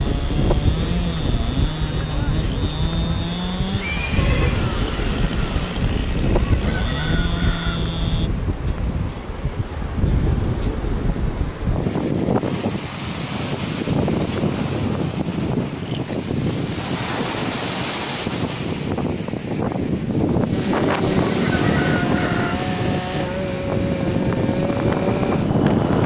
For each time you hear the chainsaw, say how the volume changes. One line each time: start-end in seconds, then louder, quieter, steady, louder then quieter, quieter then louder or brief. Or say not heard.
0.0-8.3 steady
20.5-26.0 steady.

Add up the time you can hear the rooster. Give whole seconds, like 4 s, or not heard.
3 s.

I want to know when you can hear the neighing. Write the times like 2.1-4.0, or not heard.
3.9-4.7.